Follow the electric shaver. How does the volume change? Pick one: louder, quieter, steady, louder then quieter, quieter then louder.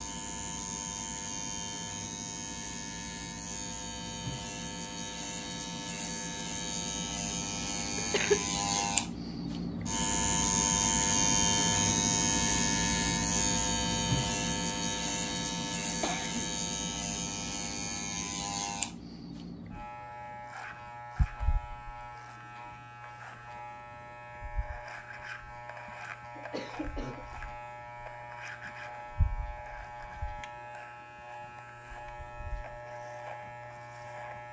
louder then quieter.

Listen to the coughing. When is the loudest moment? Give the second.
8 s.